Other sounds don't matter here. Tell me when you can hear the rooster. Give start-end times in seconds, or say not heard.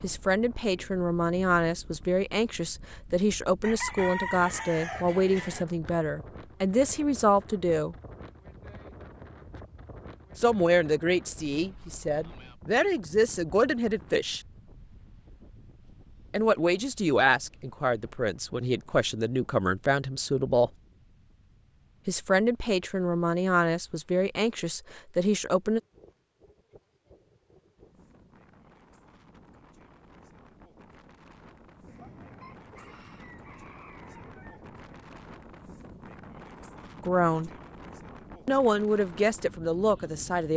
3.6-5.7, 31.9-35.1.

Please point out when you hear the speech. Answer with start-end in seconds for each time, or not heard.
0.0-8.0, 10.3-14.4, 16.3-20.7, 22.1-25.8, 37.0-37.5, 38.5-40.5.